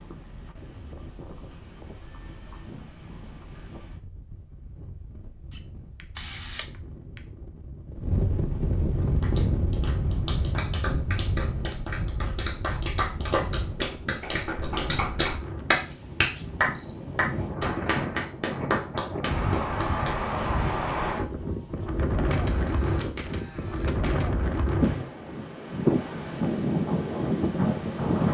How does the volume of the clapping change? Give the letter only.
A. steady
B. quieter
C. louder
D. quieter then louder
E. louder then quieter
E.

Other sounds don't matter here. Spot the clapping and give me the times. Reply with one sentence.
The clapping can be heard from 9.0 to 20.2 s.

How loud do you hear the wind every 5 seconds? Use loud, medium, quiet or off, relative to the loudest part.
quiet, medium, medium, medium, loud, loud.